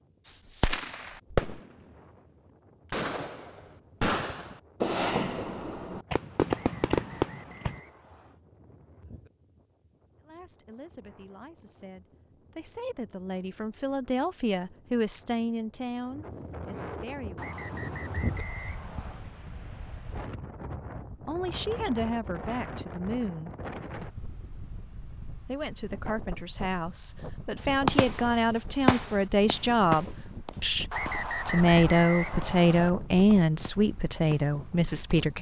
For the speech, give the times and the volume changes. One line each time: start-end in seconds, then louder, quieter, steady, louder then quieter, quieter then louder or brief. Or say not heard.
10.2-18.0 louder then quieter
21.2-23.6 brief
25.4-35.3 louder.